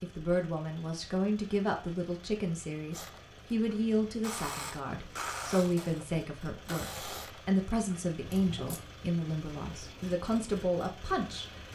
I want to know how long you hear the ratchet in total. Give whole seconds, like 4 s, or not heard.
6 s.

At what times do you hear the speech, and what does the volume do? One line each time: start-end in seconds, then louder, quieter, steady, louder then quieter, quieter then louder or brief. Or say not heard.
0.0-11.6 steady.